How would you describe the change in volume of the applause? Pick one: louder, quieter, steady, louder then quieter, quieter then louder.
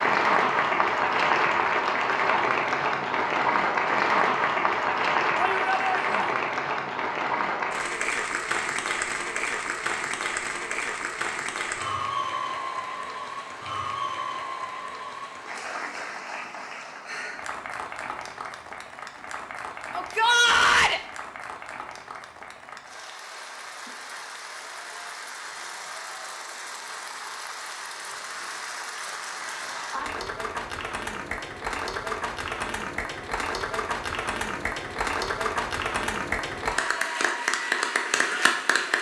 quieter then louder.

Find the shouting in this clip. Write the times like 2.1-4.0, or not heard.
5.3-6.3, 19.9-21.0.